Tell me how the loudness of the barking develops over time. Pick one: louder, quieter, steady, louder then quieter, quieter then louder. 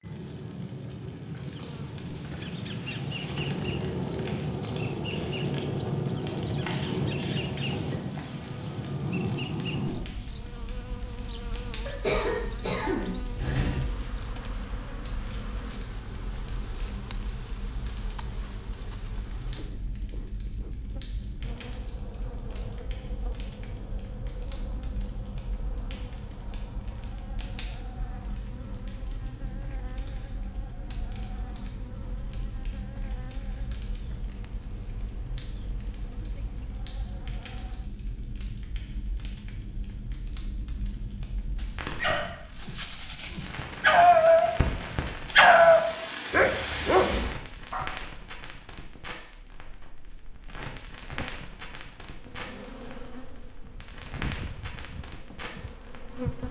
louder then quieter.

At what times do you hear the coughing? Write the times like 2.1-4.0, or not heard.
11.8-13.8.